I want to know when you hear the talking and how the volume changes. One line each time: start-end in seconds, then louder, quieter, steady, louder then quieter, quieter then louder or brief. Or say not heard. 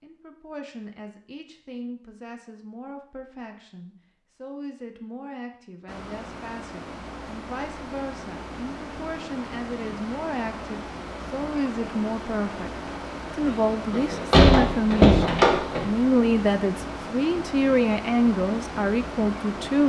0.0-19.8 louder.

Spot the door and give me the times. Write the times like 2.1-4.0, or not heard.
13.9-15.8.